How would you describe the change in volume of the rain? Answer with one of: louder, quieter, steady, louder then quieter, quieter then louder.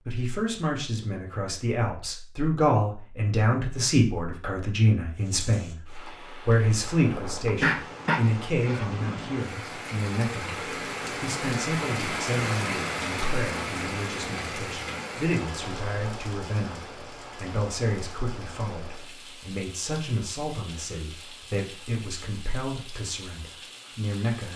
louder then quieter.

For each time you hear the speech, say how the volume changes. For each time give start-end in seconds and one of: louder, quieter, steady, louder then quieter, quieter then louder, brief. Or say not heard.
0.0-24.5 quieter.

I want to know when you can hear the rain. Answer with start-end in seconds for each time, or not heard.
5.2-24.5.